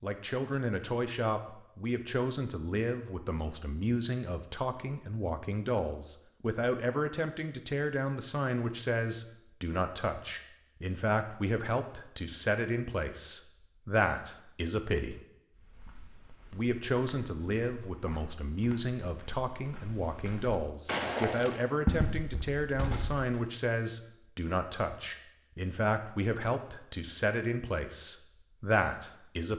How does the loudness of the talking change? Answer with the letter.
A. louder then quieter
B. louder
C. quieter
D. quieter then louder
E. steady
E.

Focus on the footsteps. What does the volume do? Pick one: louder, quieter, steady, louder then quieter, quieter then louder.
louder.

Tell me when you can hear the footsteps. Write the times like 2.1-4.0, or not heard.
15.5-23.3.